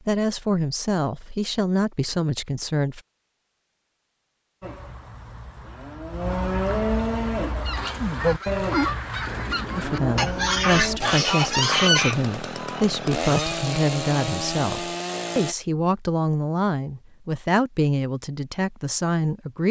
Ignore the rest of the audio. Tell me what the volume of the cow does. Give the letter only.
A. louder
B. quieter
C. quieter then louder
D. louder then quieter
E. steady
D.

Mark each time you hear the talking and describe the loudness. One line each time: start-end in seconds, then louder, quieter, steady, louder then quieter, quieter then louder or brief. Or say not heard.
0.1-3.0 brief
9.8-19.6 steady.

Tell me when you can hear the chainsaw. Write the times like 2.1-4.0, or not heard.
11.0-15.6.